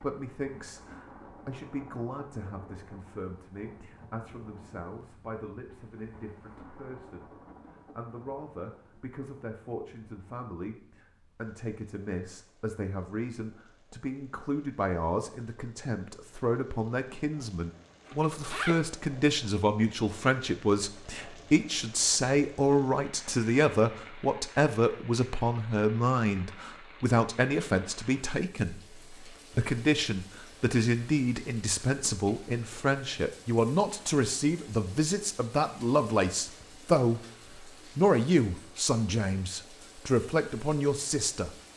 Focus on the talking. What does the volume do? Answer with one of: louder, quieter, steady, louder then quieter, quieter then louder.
louder.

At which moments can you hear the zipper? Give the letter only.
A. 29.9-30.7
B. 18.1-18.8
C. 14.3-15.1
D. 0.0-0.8
B.